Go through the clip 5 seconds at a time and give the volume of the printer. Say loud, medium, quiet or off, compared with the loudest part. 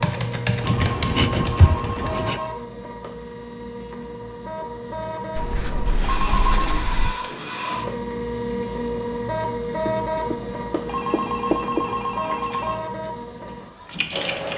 medium, loud, loud.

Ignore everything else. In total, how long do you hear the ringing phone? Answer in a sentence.
You can hear the ringing phone for 5 seconds altogether.